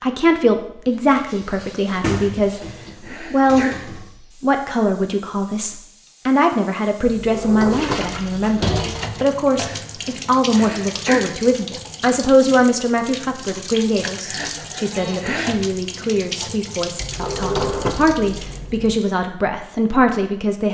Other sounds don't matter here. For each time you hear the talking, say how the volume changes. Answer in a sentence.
The talking can be heard from 0.0 to 20.6 s, at a steady volume.